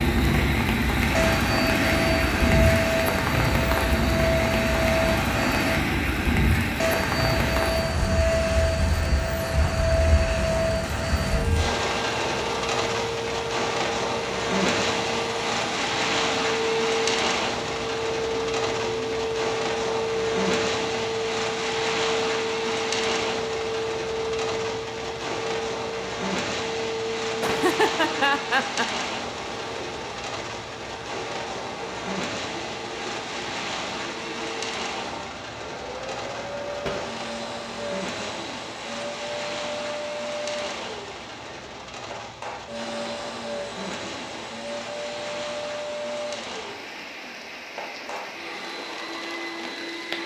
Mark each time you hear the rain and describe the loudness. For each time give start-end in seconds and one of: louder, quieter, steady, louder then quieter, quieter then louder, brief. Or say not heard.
0.0-50.2 quieter.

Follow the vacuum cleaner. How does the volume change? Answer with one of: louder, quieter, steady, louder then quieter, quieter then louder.
quieter.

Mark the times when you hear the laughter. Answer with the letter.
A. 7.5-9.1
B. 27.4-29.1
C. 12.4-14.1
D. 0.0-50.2
B.